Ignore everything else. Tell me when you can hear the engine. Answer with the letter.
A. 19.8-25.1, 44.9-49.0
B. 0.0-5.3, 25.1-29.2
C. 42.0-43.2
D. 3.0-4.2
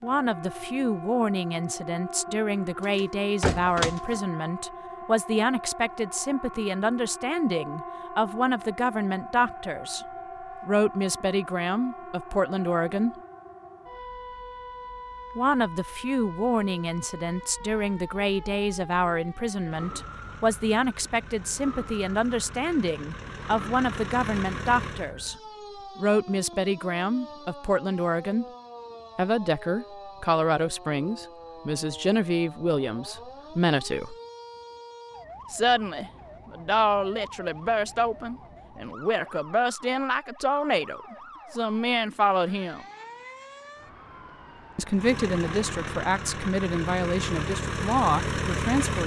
A.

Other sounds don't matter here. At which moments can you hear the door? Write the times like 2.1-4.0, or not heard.
3.0-4.2.